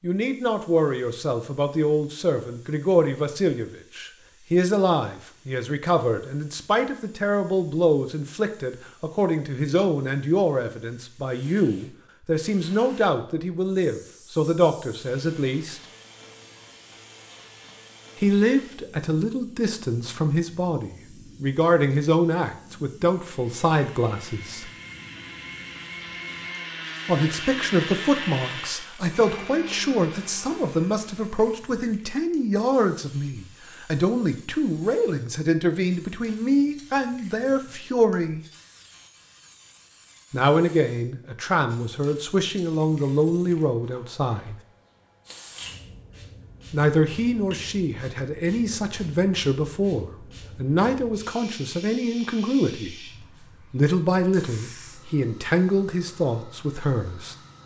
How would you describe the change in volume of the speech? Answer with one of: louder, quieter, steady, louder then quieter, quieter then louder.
steady.